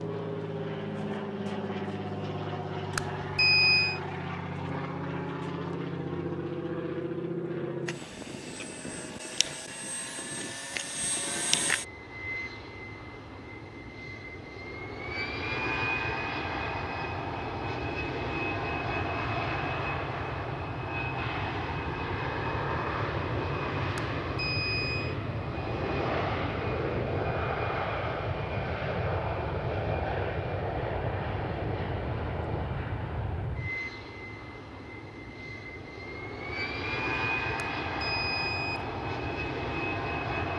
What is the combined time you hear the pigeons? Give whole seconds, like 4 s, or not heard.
not heard.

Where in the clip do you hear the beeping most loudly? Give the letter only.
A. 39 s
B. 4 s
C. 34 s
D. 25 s
B.